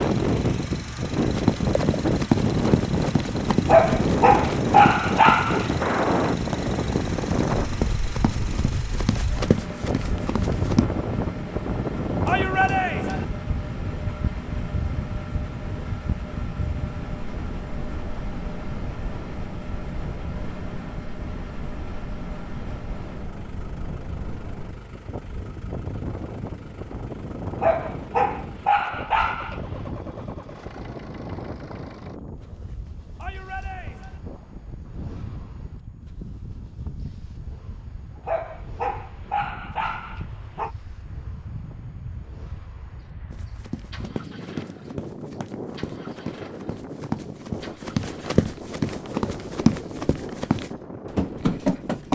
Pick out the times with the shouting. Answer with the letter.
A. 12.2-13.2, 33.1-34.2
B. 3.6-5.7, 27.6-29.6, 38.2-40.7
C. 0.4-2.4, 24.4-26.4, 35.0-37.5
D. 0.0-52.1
A.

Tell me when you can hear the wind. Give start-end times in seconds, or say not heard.
0.0-52.1.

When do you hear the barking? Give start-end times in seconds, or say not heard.
3.6-5.7, 27.6-29.6, 38.2-40.7.